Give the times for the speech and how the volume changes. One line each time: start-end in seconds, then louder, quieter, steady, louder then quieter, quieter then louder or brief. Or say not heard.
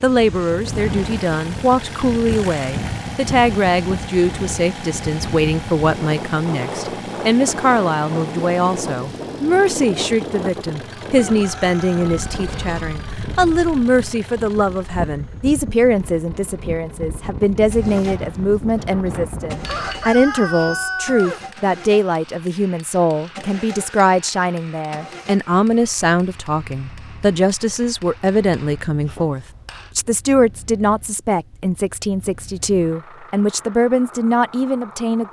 0.0-35.2 steady.